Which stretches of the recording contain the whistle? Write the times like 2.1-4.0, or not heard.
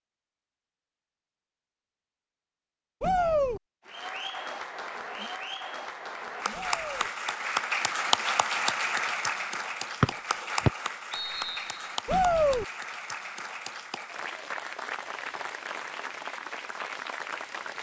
10.0-11.8.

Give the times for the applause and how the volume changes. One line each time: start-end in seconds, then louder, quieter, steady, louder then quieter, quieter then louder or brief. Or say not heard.
3.9-17.7 louder then quieter.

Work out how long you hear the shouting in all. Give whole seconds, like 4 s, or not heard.
2 s.